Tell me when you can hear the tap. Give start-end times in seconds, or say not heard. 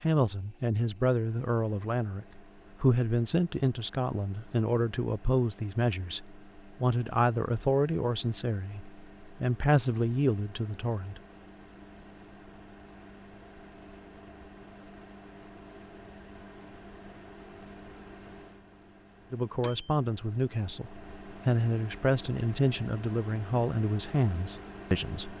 not heard.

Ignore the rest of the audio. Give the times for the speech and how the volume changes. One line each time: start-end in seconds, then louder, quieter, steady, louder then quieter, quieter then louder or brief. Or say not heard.
0.0-11.2 steady
19.3-25.3 steady.